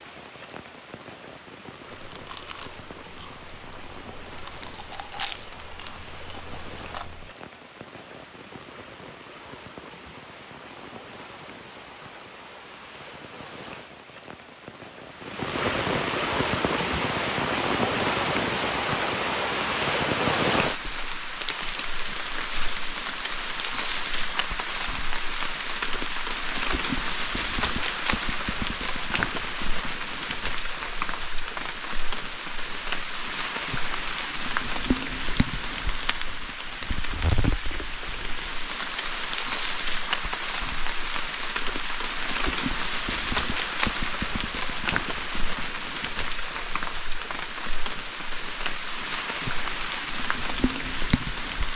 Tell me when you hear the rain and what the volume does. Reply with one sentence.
You can hear the rain from 0.0 to 51.7 s, getting louder.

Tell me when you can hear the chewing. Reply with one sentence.
The chewing can be heard from 1.9 to 7.3 s.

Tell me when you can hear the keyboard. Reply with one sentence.
The keyboard can't be heard in this clip.